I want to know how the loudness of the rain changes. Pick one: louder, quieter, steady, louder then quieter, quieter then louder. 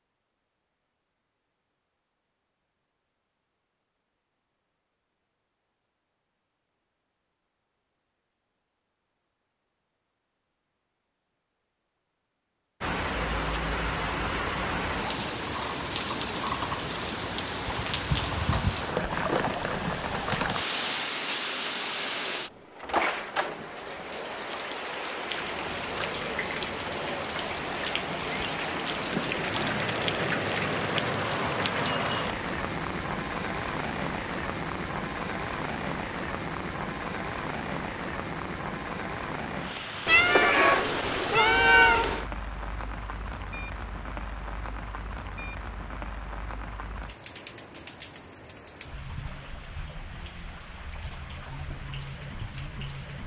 quieter.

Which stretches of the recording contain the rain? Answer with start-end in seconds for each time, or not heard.
12.8-53.2.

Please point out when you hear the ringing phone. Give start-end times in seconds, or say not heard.
not heard.